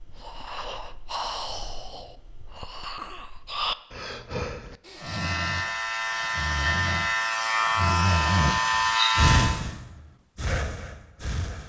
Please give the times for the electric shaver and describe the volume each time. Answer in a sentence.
You can hear the electric shaver from 5.0 to 9.6 s, getting louder.